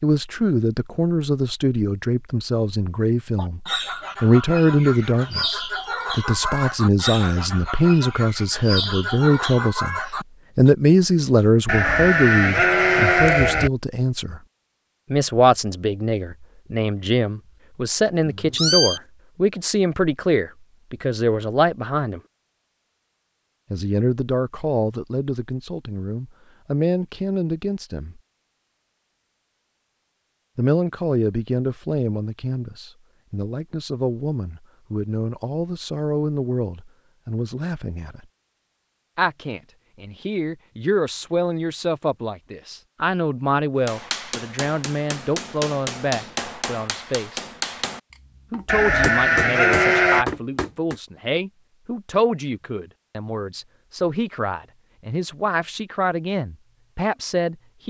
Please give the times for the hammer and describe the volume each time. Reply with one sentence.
The hammer can be heard from 43.9 to 51.0 s, getting louder.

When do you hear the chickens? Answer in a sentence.
You can hear the chickens from 3.4 to 10.7 s.